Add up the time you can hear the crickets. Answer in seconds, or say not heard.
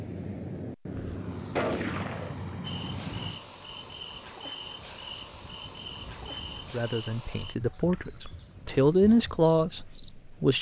8 s.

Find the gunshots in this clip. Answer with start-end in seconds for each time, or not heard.
0.9-2.5.